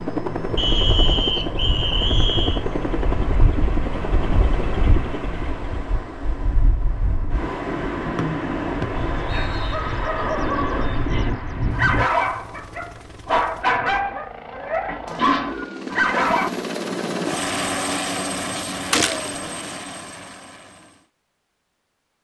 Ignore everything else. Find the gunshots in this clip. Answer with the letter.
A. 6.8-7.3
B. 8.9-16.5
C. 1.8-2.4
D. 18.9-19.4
D.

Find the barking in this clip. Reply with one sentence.
The barking can be heard from 8.9 to 16.5 s.